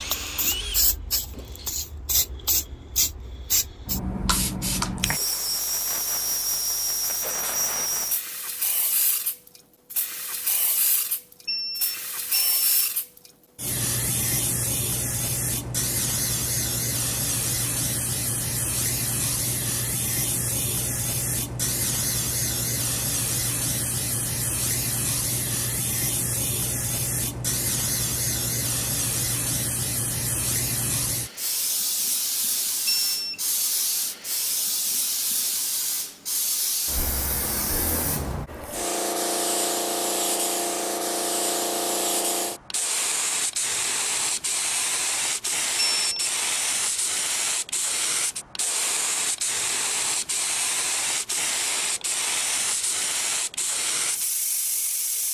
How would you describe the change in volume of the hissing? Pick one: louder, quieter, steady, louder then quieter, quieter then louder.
steady.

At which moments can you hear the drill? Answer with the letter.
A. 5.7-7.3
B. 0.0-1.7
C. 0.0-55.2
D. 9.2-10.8
B.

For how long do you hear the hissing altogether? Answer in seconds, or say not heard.
55 s.